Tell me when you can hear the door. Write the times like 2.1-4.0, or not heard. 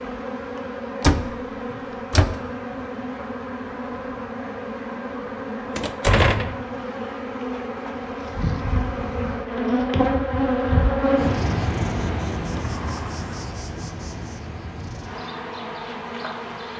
1.0-2.4, 5.8-6.6, 12.5-13.5.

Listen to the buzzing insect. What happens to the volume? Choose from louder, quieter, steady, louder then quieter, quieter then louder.
louder then quieter.